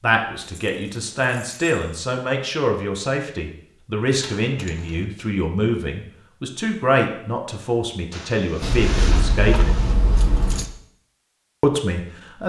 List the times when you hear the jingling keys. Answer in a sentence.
You can hear the jingling keys from 0.4 to 2.0 s, from 4.2 to 5.0 s and from 8.6 to 10.7 s.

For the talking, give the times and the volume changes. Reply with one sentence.
You can hear the talking from 0.0 to 9.8 s, at a steady volume; and briefly from 11.6 to 12.4 s.